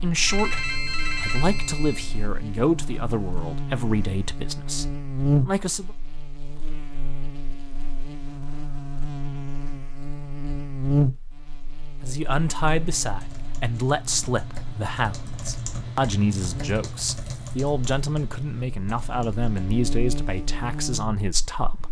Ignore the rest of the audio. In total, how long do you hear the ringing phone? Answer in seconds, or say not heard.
2 s.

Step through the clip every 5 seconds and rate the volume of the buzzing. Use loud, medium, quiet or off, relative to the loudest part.
medium, loud, loud, medium, medium.